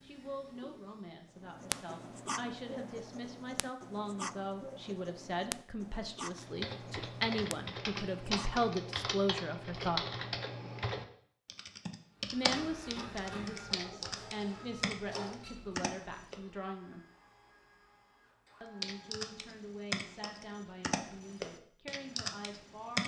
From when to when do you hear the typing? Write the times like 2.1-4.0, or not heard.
6.3-16.4, 18.8-23.0.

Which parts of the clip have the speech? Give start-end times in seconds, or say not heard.
0.0-10.1, 12.3-17.1, 18.6-23.0.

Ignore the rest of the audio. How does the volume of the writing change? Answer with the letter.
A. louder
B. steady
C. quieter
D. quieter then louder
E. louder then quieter
C.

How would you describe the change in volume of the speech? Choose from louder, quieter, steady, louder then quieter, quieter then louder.
louder then quieter.